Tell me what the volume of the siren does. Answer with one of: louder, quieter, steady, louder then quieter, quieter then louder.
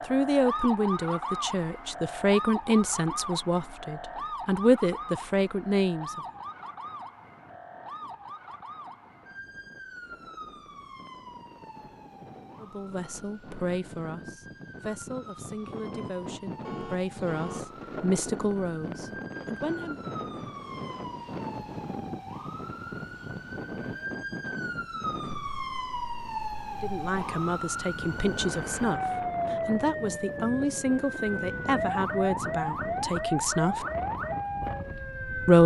quieter then louder.